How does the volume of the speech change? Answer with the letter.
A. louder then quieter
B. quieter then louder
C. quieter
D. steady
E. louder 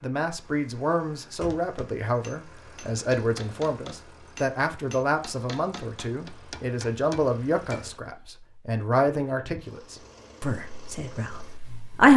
C.